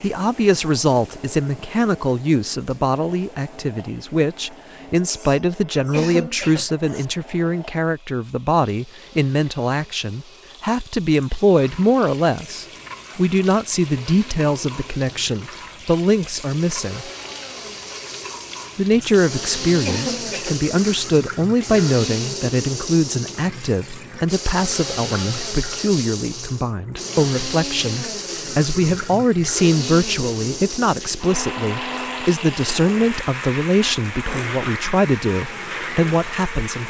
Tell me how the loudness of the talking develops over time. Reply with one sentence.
The volume of the talking stays about the same.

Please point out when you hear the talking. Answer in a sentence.
The talking can be heard from 0.0 to 17.1 s and from 18.8 to 36.8 s.